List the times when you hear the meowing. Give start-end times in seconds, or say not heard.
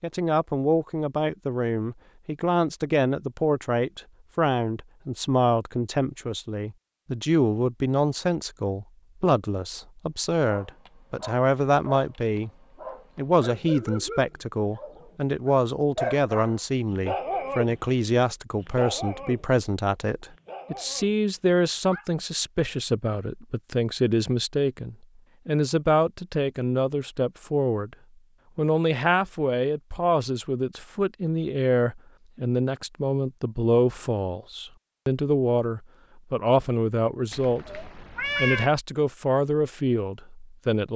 37.3-38.7.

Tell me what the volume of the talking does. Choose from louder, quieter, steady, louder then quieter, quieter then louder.
steady.